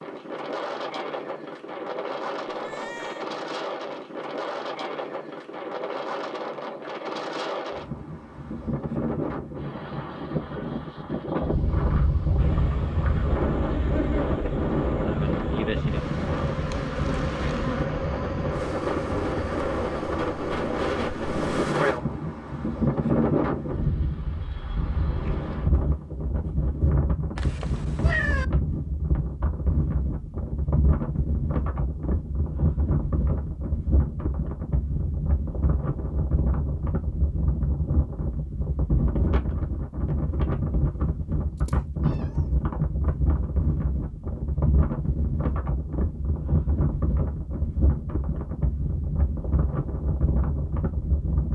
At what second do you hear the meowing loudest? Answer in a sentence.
The volume of the meowing peaks at 28 seconds.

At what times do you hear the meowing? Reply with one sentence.
The meowing can be heard from 2.5 to 3.2 s, from 27.4 to 28.4 s and from 41.6 to 42.5 s.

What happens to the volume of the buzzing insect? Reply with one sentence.
The loudness of the buzzing insect stays about the same.